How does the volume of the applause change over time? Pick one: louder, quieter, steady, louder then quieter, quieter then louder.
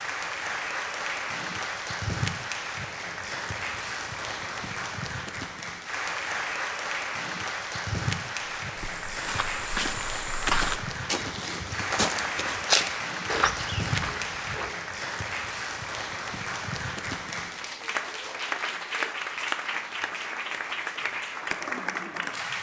steady.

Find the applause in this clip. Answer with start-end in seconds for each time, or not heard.
0.0-22.5.